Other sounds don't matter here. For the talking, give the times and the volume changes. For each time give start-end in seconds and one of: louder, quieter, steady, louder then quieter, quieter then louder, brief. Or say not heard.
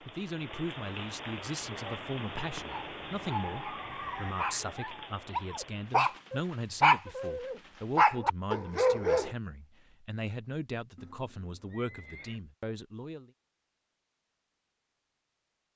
0.0-13.3 steady.